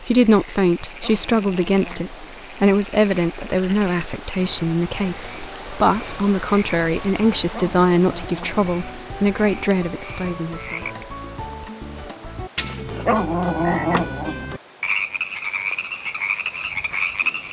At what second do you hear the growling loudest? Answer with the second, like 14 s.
13 s.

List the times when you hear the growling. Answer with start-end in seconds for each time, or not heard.
0.9-2.5, 7.4-8.7, 12.7-14.4.